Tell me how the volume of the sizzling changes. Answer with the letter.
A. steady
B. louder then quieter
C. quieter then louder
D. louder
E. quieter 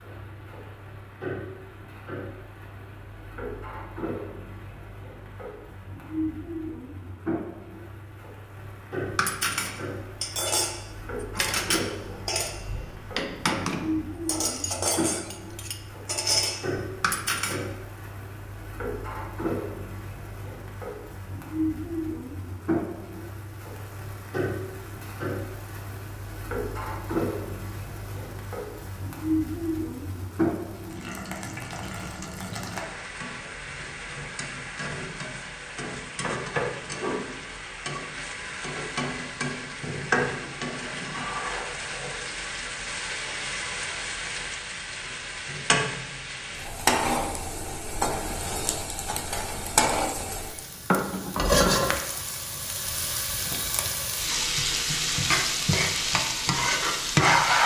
D.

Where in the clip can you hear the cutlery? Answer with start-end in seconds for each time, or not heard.
9.2-17.6.